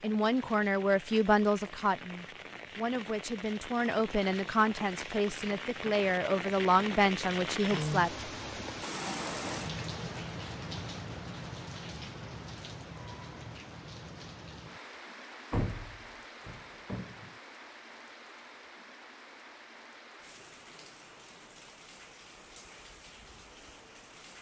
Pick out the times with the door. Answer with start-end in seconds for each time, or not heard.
15.5-17.3.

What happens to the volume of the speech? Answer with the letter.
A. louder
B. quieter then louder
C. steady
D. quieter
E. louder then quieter
B.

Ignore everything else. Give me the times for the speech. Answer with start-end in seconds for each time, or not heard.
0.0-8.7.